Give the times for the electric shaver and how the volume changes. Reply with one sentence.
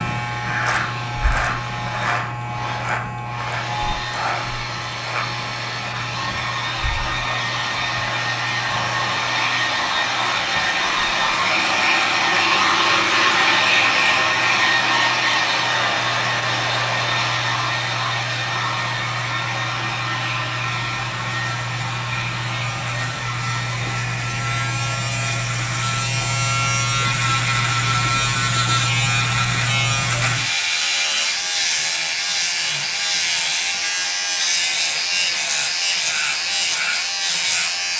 You can hear the electric shaver from 0.0 to 37.9 s, getting quieter then louder.